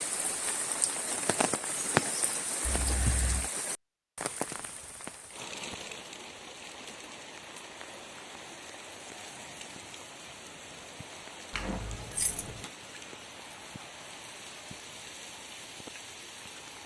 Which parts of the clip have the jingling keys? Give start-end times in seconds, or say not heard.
2.6-3.5, 11.5-12.7.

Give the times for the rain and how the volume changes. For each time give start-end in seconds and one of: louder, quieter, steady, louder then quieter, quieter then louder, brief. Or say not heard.
0.0-16.8 quieter.